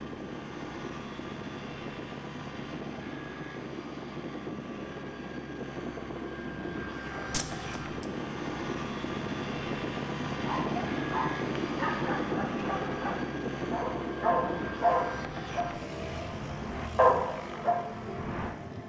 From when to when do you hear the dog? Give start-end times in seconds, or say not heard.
10.4-18.6.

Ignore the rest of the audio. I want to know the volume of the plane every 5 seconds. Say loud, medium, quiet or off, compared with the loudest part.
medium, loud, loud, medium.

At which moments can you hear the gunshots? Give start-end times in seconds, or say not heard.
7.3-8.0.